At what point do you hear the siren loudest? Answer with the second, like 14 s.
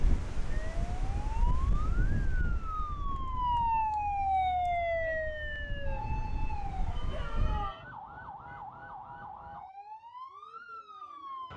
4 s.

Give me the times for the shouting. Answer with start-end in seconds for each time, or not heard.
7.1-7.8.